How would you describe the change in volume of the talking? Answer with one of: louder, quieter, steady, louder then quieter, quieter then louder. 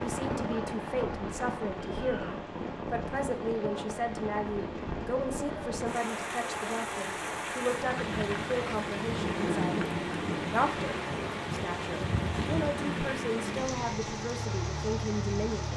steady.